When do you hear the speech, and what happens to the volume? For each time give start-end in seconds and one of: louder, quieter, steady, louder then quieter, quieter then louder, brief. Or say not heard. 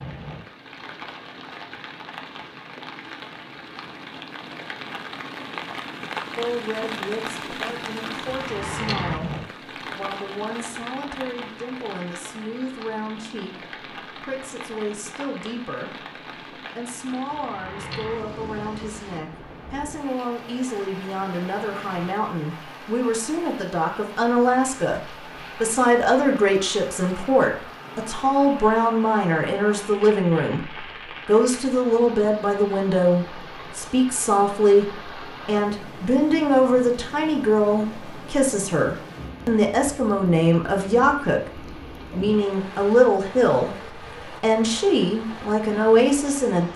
6.3-46.7 louder.